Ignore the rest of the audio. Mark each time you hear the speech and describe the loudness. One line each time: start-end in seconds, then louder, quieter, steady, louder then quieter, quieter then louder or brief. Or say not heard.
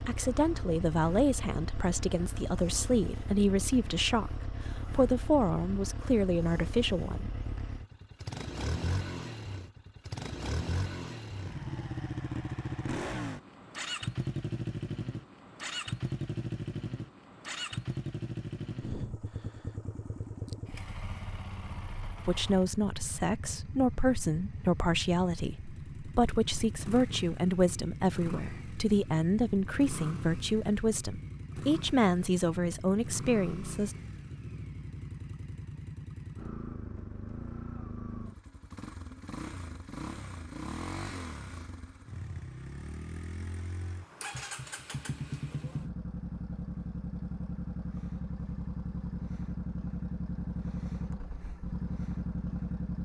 0.0-7.3 steady
22.2-34.0 steady.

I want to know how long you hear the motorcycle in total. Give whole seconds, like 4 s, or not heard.
53 s.